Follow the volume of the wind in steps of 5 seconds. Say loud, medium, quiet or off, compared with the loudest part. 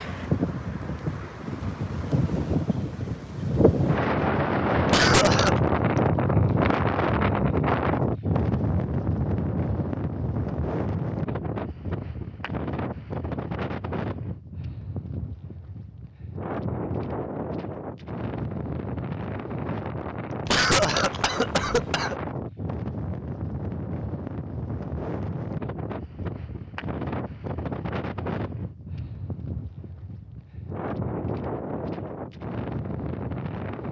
loud, loud, medium, medium, medium, medium, medium.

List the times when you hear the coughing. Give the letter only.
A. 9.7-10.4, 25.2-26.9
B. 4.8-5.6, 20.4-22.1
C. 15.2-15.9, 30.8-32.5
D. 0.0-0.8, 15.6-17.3
B.